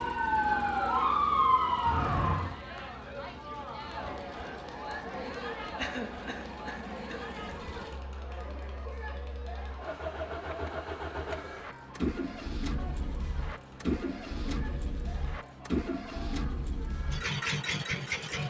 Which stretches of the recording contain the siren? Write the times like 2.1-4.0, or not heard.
0.0-2.5.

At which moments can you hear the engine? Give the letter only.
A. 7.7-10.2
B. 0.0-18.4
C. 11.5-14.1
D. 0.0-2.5
B.